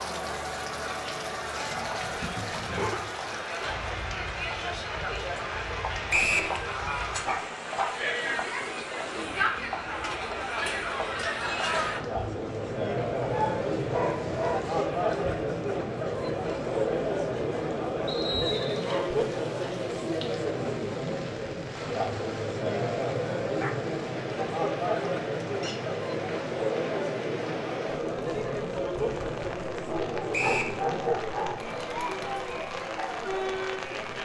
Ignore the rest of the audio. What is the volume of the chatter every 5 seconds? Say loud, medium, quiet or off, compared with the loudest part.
medium, loud, loud, loud, loud, loud, medium.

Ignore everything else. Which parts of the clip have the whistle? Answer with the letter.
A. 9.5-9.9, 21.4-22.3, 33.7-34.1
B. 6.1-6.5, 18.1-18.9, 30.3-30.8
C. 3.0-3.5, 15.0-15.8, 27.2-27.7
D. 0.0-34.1
B.